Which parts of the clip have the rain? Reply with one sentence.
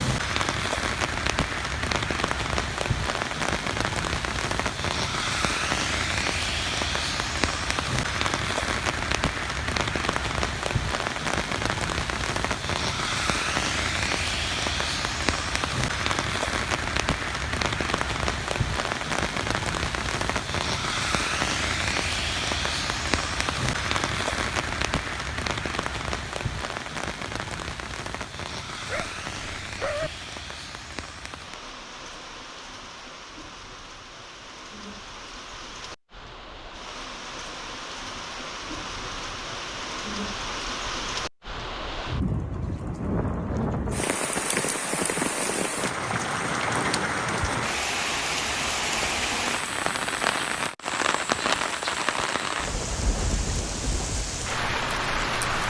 You can hear the rain from 0.0 to 55.6 s.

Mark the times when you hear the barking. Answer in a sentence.
The barking can be heard from 28.9 to 30.1 s.